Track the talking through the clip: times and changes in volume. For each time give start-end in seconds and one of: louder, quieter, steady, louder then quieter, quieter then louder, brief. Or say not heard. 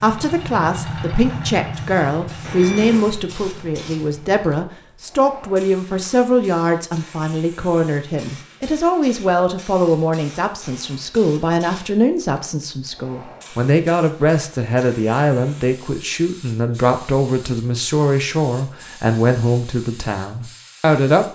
0.0-21.2 steady.